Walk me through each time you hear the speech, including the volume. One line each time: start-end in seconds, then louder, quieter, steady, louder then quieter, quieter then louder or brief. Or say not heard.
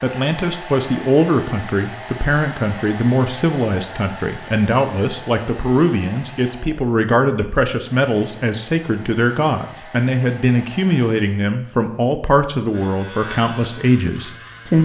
0.0-14.8 steady.